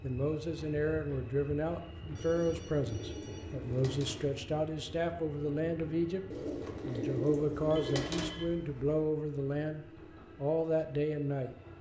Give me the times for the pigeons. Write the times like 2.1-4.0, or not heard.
2.1-4.2, 6.3-8.3.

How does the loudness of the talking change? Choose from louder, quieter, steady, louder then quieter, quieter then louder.
steady.